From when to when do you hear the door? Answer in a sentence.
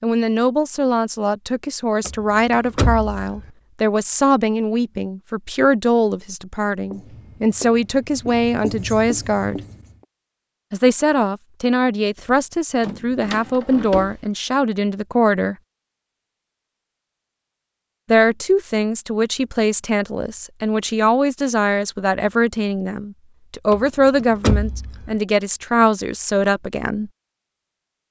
The door can be heard from 2.0 to 3.5 s, from 12.2 to 14.1 s and from 23.7 to 25.1 s.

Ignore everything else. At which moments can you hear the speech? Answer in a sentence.
The speech can be heard from 0.0 to 9.6 s, from 10.7 to 15.6 s and from 18.1 to 27.1 s.